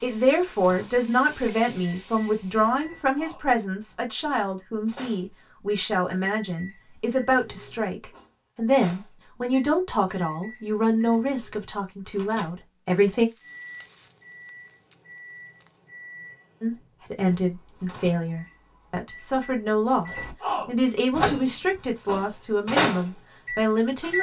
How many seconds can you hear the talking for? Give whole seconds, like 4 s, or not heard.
21 s.